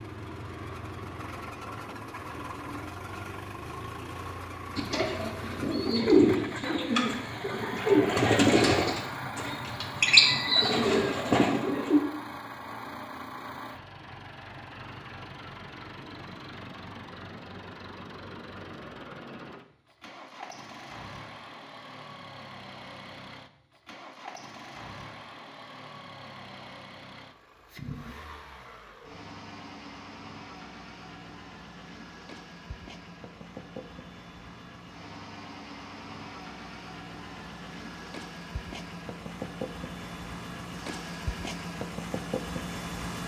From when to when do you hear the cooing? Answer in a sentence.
The cooing can be heard from 4.8 to 12.0 s.